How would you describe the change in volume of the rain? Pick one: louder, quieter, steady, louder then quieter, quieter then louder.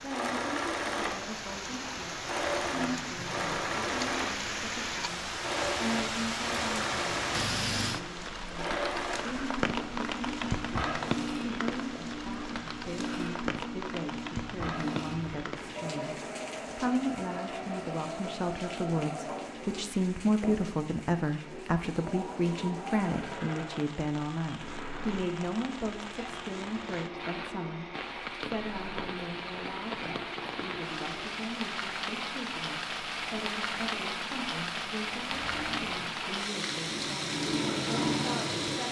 quieter then louder.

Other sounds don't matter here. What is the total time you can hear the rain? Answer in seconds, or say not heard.
39 s.